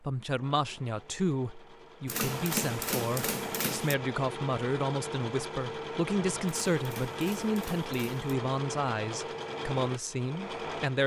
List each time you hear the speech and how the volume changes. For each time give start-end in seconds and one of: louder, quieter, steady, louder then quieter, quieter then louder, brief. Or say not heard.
0.0-11.0 steady.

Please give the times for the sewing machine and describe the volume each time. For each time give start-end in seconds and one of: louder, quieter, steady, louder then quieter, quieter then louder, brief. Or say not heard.
0.0-11.0 louder.